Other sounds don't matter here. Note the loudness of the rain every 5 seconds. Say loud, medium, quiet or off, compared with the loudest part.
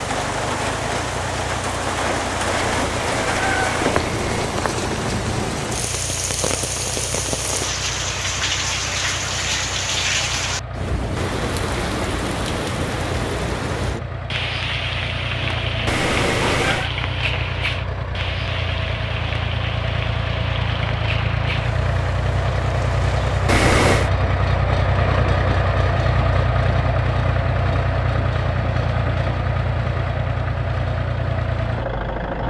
loud, loud, loud, medium, medium, off, off.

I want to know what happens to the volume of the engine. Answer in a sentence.
The loudness of the engine goes up.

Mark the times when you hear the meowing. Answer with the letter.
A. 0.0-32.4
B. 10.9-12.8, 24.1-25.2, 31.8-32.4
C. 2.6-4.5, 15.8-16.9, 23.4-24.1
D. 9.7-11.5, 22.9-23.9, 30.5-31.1
C.